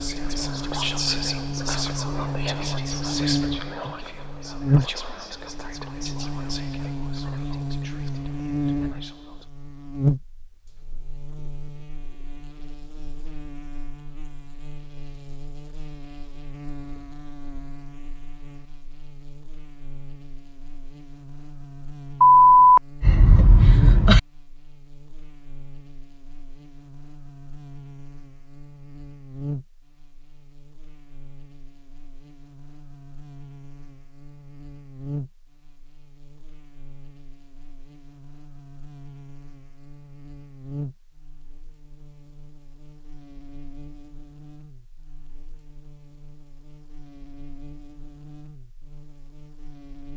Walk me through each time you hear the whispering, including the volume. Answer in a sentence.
You can hear the whispering from 0.0 to 9.4 s, getting quieter.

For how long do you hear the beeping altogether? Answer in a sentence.
The beeping can be heard for 2 seconds in total.